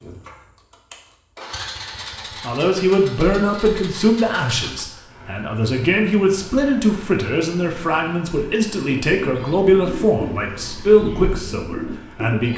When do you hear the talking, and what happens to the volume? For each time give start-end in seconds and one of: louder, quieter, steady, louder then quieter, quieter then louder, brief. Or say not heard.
2.4-12.5 steady.